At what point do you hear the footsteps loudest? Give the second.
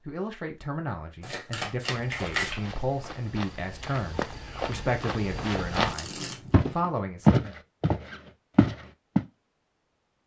7 s.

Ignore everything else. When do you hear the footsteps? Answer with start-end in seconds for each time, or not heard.
1.9-9.2.